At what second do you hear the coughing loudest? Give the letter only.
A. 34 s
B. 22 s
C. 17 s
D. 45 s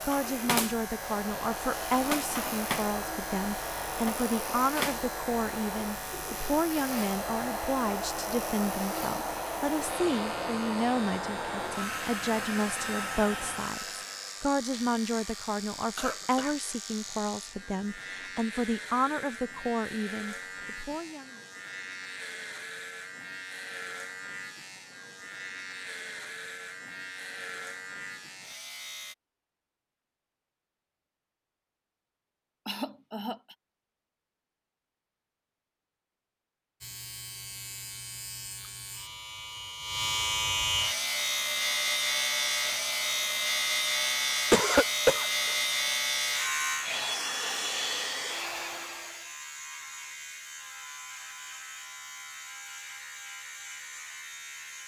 D.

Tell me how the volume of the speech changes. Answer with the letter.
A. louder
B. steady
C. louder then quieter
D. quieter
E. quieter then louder
B.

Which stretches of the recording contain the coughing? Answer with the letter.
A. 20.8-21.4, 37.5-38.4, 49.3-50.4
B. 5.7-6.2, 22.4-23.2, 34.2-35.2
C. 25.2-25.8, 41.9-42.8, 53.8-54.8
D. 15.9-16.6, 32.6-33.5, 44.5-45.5
D.